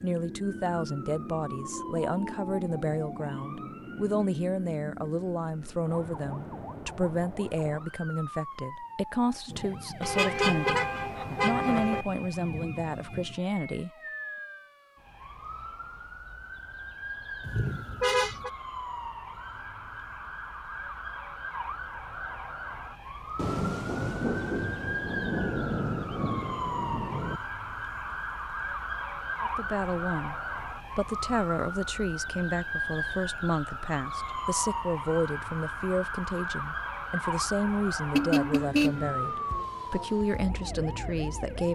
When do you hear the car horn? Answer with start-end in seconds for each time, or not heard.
10.0-12.1, 17.4-18.5, 38.1-39.1.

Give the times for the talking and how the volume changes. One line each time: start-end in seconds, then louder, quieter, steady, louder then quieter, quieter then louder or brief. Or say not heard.
0.0-13.9 steady
29.4-41.7 steady.